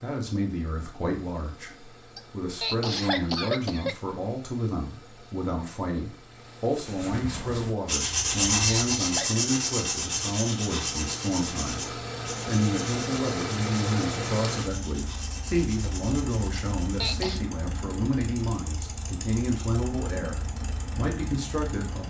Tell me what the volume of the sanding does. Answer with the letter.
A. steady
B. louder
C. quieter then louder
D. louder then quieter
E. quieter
E.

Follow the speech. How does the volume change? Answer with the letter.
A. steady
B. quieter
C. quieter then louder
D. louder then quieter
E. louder
A.